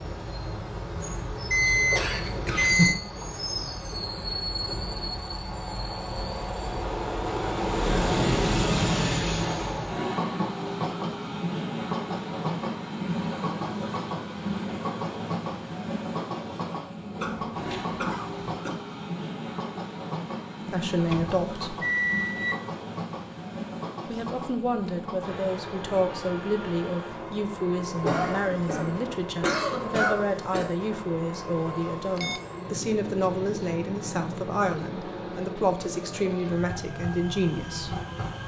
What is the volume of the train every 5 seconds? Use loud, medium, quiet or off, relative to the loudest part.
medium, loud, loud, medium, medium, medium, medium, medium.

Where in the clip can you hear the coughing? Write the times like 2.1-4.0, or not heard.
1.9-3.0, 17.1-18.7, 28.0-30.8.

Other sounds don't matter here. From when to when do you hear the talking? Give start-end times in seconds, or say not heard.
20.7-21.8, 24.1-38.0.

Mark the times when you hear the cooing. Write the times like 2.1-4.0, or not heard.
not heard.